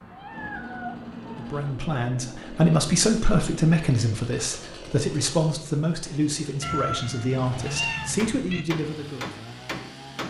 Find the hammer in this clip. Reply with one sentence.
The hammer can be heard from 8.0 to 10.2 s.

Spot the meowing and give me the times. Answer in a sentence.
You can hear the meowing from 0.0 to 1.8 s and from 6.6 to 8.7 s.